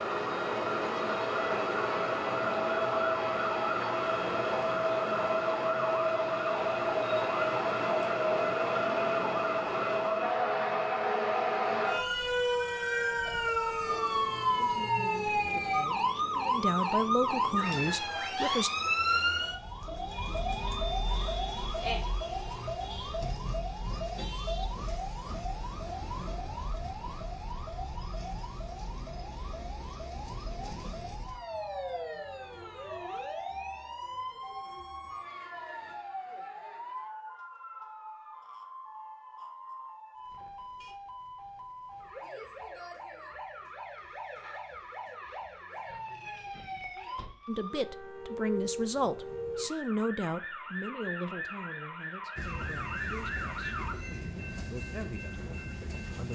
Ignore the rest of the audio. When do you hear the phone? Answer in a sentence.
The phone can't be heard in this clip.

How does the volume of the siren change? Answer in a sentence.
The volume of the siren goes down.